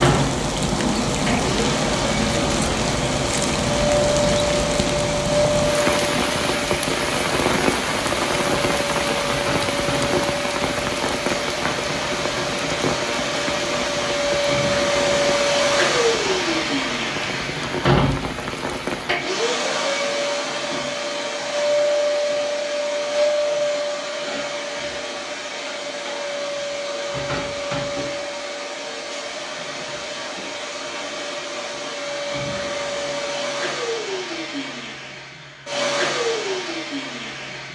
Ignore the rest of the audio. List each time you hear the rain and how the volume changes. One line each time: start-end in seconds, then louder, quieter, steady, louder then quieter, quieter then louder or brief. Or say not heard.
0.0-19.3 quieter.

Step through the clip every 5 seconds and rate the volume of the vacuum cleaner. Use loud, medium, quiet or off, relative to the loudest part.
loud, loud, loud, loud, loud, medium, medium, medium.